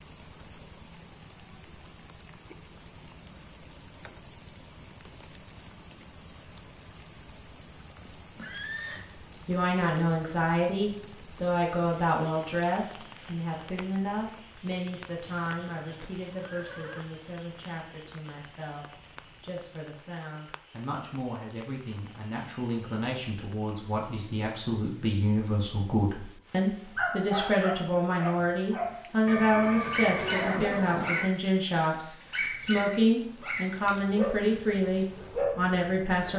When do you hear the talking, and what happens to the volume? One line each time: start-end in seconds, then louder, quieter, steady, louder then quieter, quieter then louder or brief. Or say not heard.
8.9-36.3 quieter then louder.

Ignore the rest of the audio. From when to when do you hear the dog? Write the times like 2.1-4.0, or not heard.
26.9-29.1, 29.6-31.2, 32.3-36.3.